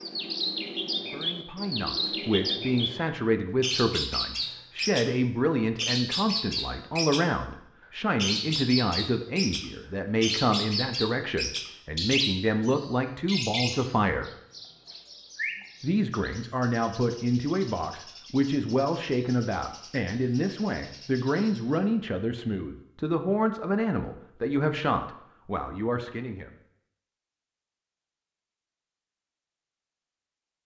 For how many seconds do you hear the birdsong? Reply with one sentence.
The birdsong can be heard for 20 seconds in total.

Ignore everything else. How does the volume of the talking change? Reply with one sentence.
The loudness of the talking stays about the same.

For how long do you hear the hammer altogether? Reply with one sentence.
You can't hear the hammer here.